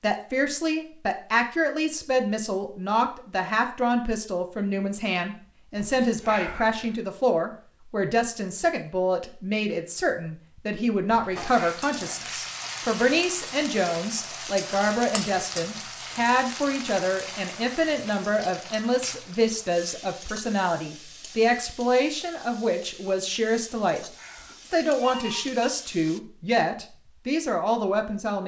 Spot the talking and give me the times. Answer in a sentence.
The talking can be heard from 0.0 to 24.0 s and from 24.6 to 28.4 s.